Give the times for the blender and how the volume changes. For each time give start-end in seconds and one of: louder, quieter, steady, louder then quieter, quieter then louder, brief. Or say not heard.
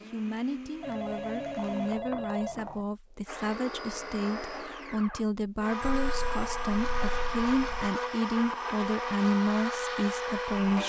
0.0-10.8 louder.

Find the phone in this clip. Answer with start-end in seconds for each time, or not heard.
0.8-2.9, 5.8-7.9.